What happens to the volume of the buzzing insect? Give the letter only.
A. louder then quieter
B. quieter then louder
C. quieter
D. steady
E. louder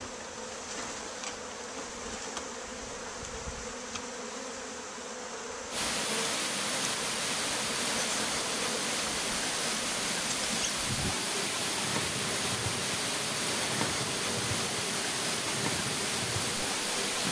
D.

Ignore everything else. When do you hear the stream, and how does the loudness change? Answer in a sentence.
You can hear the stream from 5.7 to 17.2 s, at a steady volume.